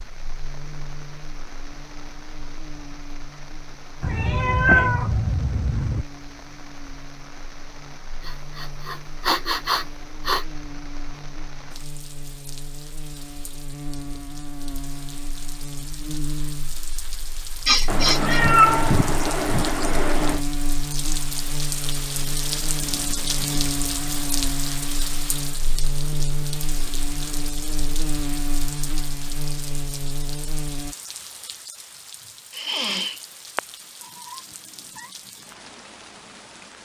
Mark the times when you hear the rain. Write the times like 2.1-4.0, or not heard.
0.0-36.8.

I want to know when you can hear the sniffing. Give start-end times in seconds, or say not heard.
8.2-10.4, 17.6-18.4, 32.5-33.2.